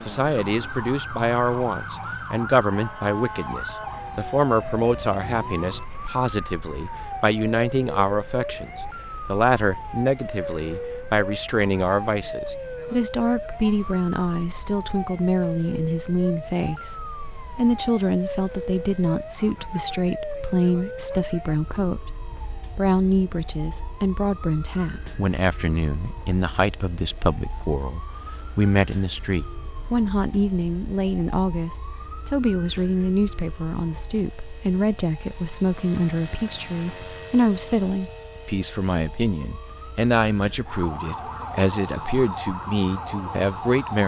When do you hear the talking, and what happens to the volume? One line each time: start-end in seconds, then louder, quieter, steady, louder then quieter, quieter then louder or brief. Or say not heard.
0.1-44.0 steady.